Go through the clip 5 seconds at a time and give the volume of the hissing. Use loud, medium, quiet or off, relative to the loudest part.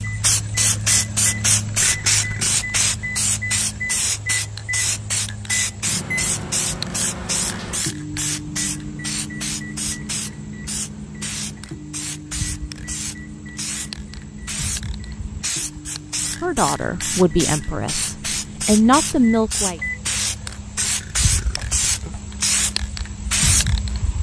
loud, medium, medium, medium, loud.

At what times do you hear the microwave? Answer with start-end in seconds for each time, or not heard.
0.0-20.6.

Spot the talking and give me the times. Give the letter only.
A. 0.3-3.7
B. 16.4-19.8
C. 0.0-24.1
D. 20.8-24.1
B.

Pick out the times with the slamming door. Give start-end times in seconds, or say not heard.
not heard.